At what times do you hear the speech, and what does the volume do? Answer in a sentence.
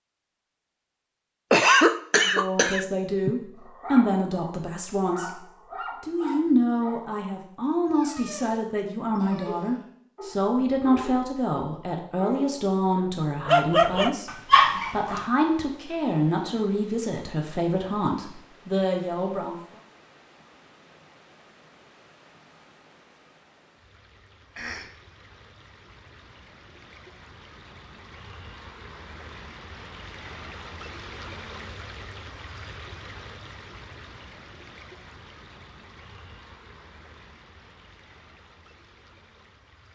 You can hear the speech from 2.2 to 19.6 s, at a steady volume.